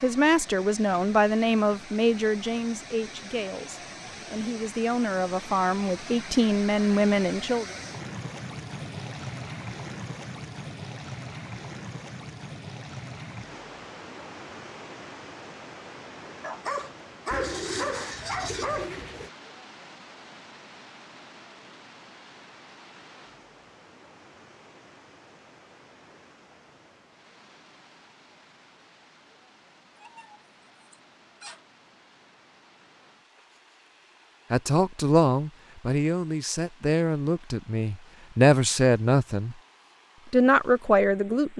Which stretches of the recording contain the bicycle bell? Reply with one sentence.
You can't hear the bicycle bell here.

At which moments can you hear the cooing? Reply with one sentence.
The cooing can be heard from 17.3 to 19.3 s.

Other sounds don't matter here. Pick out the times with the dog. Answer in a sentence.
The dog can be heard from 16.4 to 18.9 s and from 29.9 to 31.6 s.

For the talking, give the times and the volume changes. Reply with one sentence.
The talking can be heard from 0.0 to 7.8 s, getting quieter then louder; from 34.5 to 39.5 s, getting quieter then louder; and briefly from 40.3 to 41.5 s.